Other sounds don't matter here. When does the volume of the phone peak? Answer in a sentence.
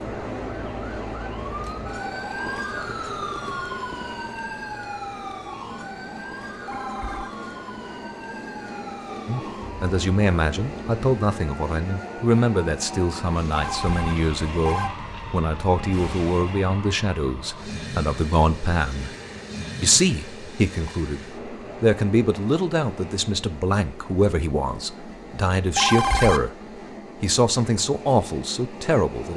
The volume of the phone peaks at 26 seconds.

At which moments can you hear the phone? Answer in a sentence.
The phone can be heard from 6.5 to 7.3 s, from 13.5 to 14.9 s and from 25.6 to 26.4 s.